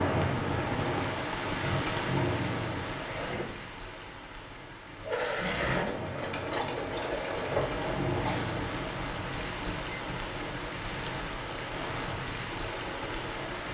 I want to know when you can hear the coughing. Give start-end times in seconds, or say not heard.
6.5-8.6.